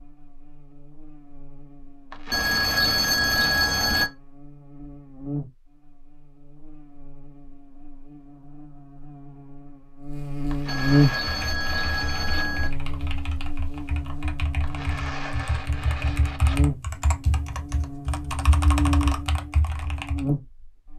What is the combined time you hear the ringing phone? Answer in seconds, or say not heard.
4 s.